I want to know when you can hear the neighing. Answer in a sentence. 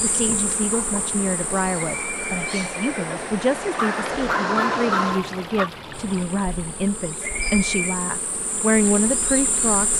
You can hear the neighing from 1.8 to 3.4 s and from 7.2 to 8.0 s.